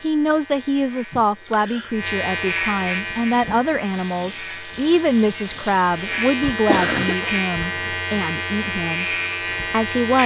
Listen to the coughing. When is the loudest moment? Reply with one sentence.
The volume of the coughing peaks at 7 seconds.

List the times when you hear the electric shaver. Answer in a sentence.
You can hear the electric shaver from 0.0 to 10.2 s.